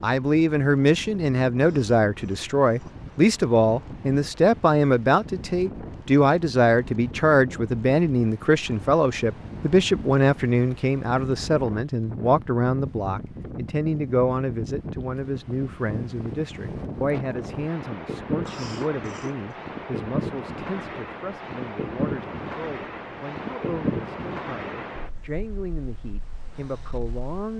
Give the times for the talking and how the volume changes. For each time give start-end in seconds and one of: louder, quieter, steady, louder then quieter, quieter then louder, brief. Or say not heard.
0.0-27.5 quieter.